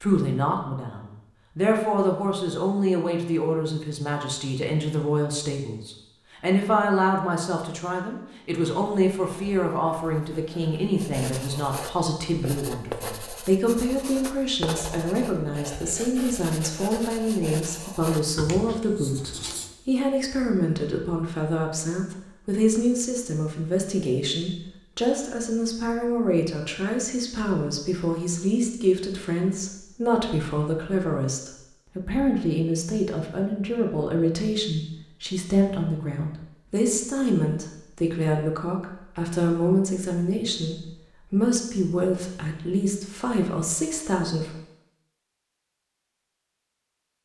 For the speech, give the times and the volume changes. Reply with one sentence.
The speech can be heard from 0.0 to 44.5 s, at a steady volume.